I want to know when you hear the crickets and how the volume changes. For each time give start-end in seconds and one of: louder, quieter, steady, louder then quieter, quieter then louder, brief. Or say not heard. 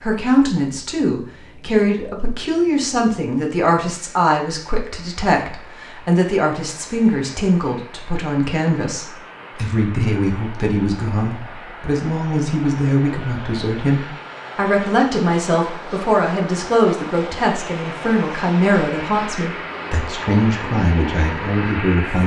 not heard.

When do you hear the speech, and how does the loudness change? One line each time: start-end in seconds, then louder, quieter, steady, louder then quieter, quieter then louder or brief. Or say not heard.
0.0-22.2 steady.